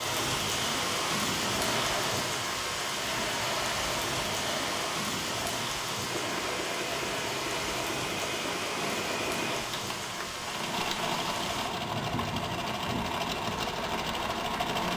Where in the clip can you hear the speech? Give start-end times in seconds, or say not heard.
not heard.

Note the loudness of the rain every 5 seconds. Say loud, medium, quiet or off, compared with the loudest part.
loud, loud, medium.